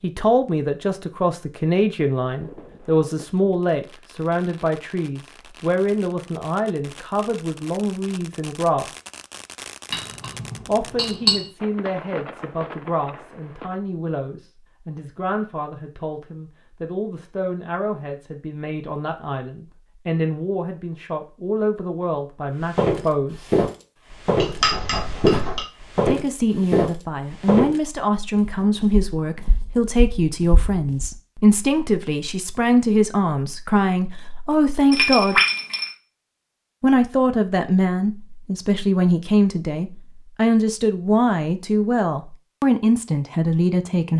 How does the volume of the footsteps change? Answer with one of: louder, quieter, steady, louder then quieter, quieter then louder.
quieter.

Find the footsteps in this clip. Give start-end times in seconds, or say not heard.
22.8-31.1.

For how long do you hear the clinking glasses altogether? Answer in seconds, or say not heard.
4 s.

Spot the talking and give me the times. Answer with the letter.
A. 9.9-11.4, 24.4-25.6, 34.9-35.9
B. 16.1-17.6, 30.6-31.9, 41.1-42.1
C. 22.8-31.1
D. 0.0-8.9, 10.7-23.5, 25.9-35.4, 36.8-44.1
D.